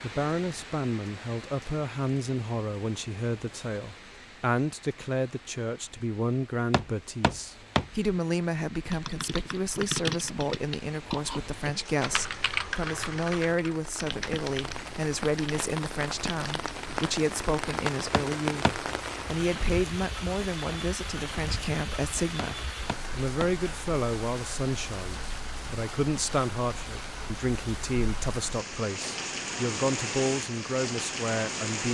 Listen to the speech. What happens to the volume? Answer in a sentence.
The volume of the speech stays about the same.